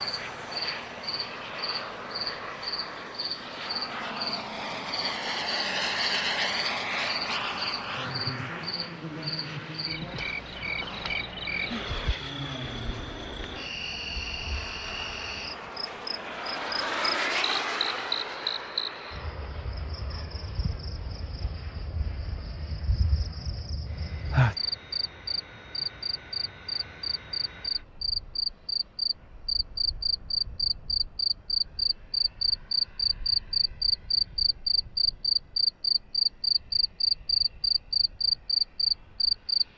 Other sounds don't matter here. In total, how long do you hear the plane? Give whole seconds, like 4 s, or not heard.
40 s.